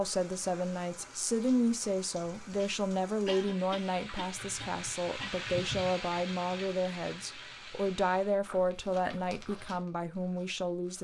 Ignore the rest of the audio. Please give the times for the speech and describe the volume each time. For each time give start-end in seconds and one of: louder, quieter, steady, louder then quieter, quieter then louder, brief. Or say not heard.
0.0-10.9 steady.